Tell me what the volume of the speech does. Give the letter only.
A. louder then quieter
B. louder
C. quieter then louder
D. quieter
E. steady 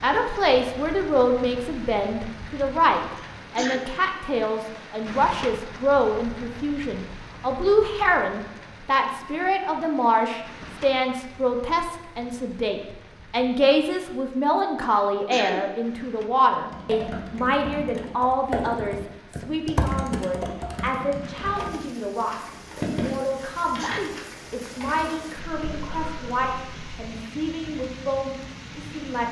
D.